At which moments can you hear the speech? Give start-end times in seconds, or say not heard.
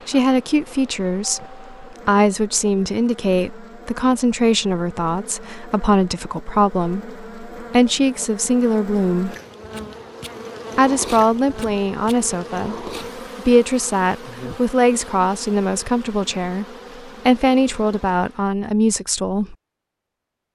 0.1-9.3, 10.8-16.6, 17.2-19.6.